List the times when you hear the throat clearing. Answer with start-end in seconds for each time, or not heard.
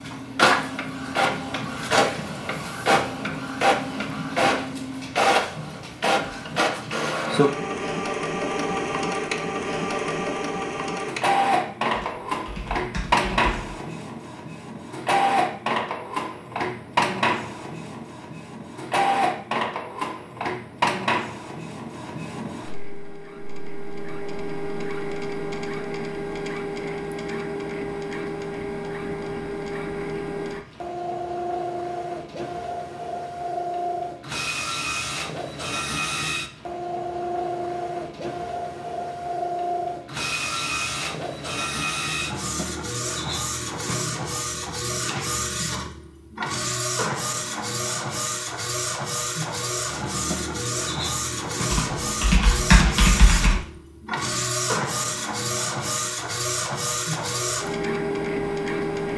not heard.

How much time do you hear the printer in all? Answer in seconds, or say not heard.
59 s.